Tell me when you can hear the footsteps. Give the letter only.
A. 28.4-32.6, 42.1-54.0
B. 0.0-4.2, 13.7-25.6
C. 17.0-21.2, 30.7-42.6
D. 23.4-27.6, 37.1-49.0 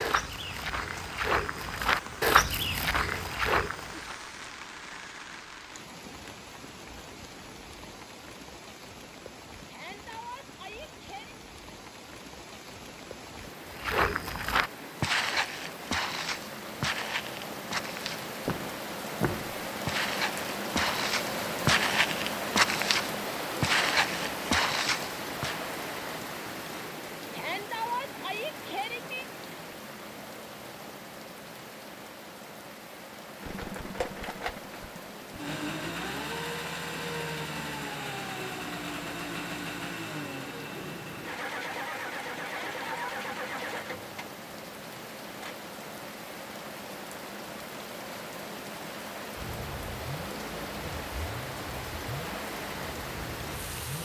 B.